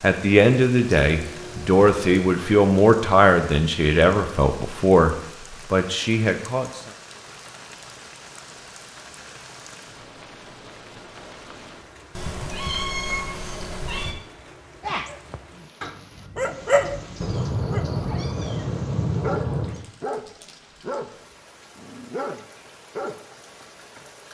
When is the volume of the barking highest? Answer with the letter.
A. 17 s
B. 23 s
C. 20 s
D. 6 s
A.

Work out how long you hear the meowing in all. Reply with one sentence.
The meowing can be heard for 6 seconds in total.